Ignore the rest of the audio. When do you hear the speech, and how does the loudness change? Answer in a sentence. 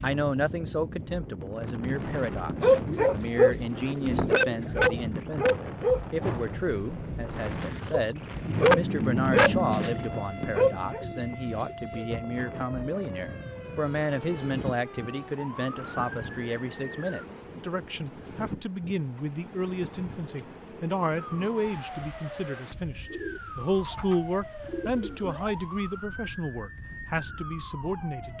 The speech can be heard from 0.0 to 28.3 s, at a steady volume.